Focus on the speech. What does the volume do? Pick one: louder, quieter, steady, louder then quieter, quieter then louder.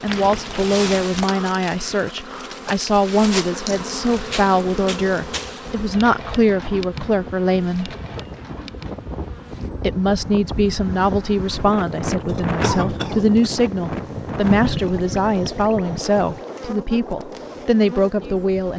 steady.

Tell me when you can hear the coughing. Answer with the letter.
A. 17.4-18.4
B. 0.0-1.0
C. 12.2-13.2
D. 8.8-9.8
C.